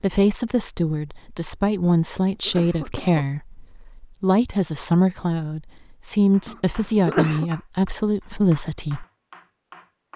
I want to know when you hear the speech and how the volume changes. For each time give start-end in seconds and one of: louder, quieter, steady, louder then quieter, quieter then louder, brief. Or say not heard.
0.0-9.1 steady.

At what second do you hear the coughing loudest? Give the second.
7 s.